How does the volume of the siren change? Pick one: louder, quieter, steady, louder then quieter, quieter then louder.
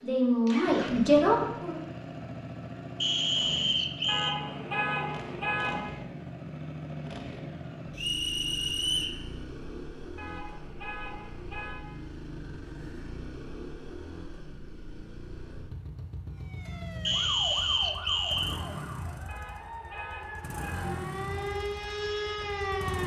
quieter then louder.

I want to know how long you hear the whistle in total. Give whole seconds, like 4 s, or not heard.
4 s.